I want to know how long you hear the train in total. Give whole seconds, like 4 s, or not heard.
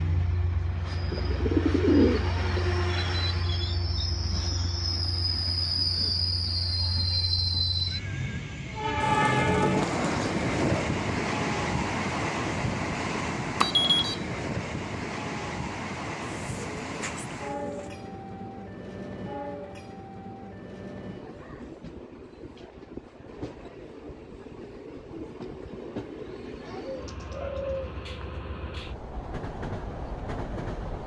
31 s.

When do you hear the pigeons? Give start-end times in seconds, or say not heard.
1.1-2.6, 9.0-10.9, 16.4-17.9, 26.6-28.2.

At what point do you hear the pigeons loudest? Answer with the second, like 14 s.
2 s.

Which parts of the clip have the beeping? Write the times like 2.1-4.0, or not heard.
13.6-14.2.